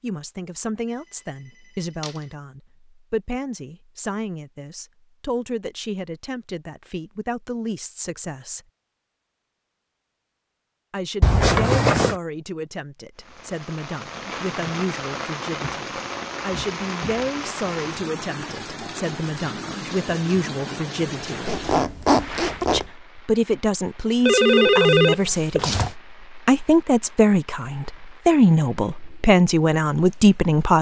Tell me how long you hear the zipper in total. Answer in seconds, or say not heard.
2 s.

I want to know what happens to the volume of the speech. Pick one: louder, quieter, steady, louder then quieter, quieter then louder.
louder.